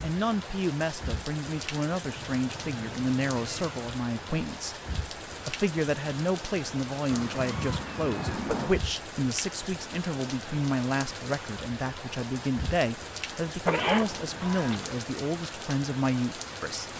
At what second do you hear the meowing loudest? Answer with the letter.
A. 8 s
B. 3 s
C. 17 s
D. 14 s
D.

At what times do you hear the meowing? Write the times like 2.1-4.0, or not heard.
2.1-3.8, 7.0-8.8, 13.7-14.9.